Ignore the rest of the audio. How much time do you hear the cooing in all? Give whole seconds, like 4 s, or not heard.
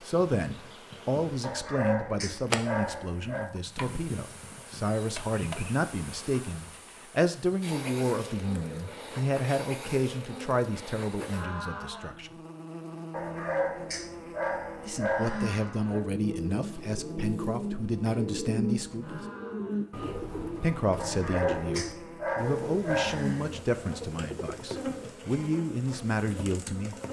9 s.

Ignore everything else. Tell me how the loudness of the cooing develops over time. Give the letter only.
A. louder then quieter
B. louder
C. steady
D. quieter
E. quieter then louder
D.